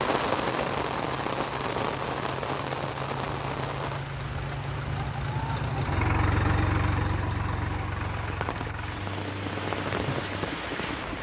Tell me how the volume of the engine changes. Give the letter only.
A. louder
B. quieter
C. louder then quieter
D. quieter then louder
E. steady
C.